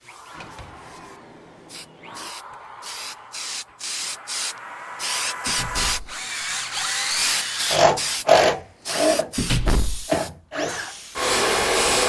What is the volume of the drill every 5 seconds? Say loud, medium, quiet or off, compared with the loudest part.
quiet, loud, loud.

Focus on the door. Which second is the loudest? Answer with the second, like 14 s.
10 s.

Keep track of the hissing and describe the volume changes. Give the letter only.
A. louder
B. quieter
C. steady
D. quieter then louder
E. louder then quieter
E.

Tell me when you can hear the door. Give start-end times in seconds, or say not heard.
0.3-2.3, 5.5-6.2, 9.3-10.1.